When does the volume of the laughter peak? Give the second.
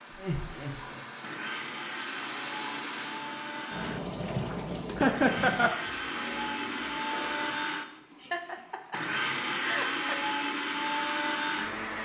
5 s.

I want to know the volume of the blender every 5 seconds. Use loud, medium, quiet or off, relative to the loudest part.
medium, loud, loud.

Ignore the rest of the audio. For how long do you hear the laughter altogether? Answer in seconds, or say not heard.
4 s.